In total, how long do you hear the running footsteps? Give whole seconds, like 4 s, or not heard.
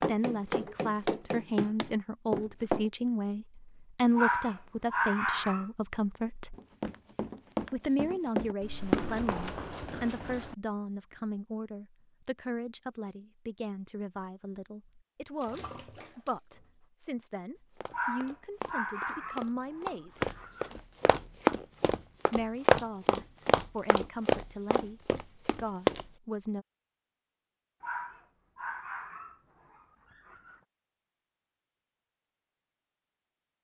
15 s.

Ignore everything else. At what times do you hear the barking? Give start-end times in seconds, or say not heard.
4.2-5.7, 17.9-20.8, 27.8-30.6.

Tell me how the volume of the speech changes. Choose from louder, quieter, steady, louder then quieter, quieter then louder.
quieter.